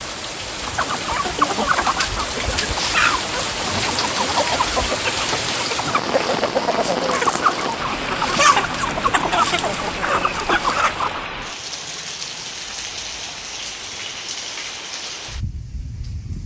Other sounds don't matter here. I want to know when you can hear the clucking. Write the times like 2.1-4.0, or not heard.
0.6-11.2.